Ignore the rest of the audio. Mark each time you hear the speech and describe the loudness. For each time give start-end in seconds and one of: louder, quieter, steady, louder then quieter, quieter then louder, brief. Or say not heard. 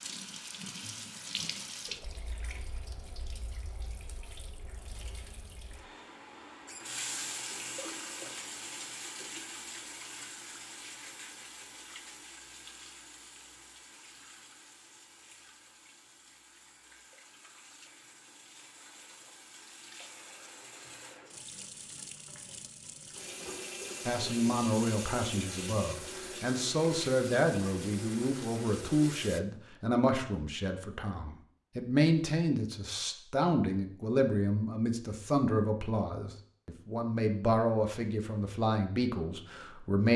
24.1-40.1 steady.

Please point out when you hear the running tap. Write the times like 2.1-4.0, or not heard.
0.0-29.4.